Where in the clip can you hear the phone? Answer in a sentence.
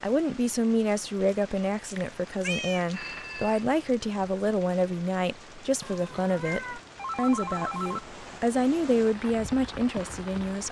The phone can be heard from 2.9 to 3.6 s and from 7.0 to 8.1 s.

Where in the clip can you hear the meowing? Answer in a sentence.
You can hear the meowing from 1.9 to 2.9 s and from 5.8 to 6.8 s.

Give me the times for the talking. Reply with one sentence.
You can hear the talking from 0.0 to 10.6 s.